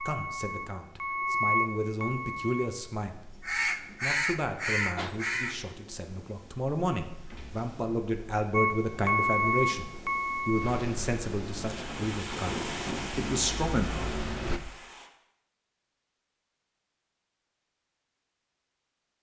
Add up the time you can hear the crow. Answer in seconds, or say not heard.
2 s.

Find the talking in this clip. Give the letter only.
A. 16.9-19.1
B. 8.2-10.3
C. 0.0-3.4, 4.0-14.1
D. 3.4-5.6
C.